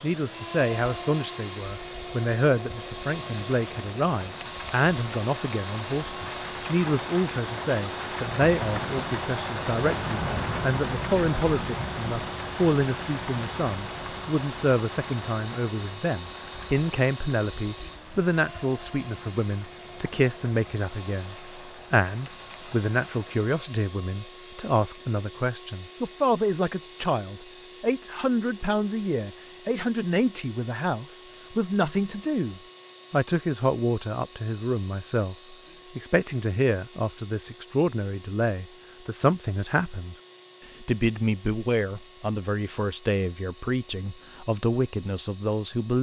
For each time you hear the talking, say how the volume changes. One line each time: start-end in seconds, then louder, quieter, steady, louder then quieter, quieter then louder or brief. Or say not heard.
0.0-40.1 steady
40.8-45.9 quieter then louder.